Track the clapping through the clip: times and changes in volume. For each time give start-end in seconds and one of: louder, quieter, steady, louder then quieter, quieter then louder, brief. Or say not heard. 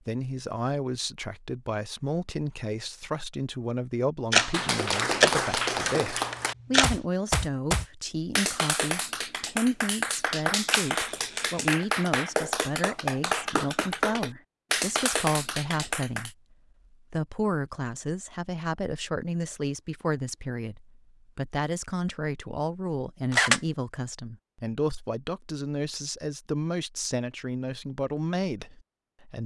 4.5-16.3 steady.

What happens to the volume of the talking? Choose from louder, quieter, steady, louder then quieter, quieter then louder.
steady.